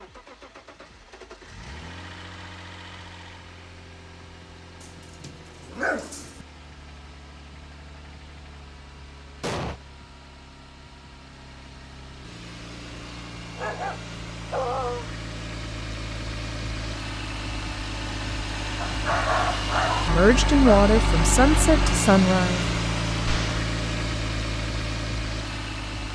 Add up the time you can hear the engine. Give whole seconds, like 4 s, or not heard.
26 s.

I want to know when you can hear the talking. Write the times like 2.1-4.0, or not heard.
20.0-22.6.